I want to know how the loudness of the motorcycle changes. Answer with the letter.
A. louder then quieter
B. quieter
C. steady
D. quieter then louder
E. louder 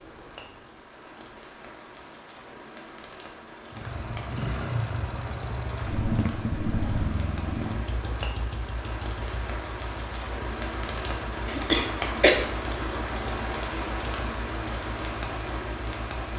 B.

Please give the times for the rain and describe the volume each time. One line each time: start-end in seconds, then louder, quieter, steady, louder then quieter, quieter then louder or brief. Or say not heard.
0.0-16.3 louder.